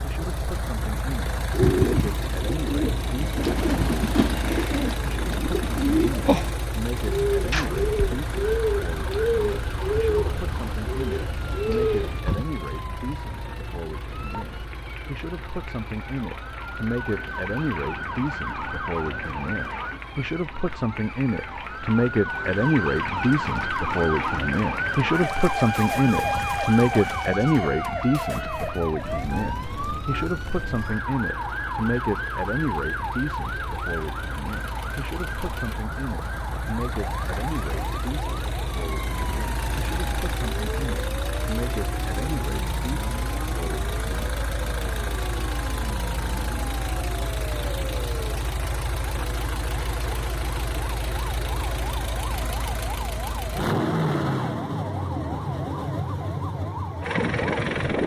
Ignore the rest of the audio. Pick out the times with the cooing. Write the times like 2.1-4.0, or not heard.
1.5-12.4.